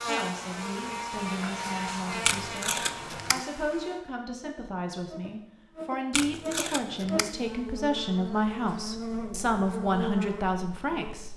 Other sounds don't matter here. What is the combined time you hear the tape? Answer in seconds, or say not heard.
2 s.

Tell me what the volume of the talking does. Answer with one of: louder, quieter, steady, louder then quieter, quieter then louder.
louder.